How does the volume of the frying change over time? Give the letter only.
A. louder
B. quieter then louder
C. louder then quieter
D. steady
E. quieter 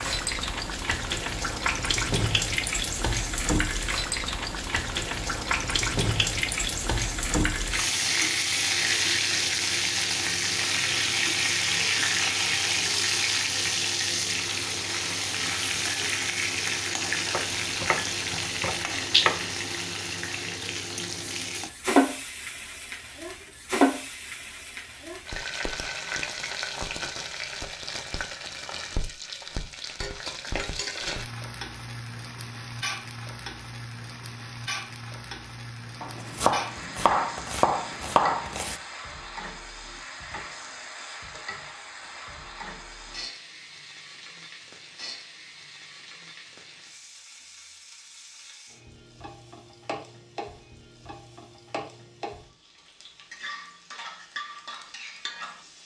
E.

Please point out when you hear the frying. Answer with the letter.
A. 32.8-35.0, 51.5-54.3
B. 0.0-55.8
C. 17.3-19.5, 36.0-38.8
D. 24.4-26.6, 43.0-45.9
B.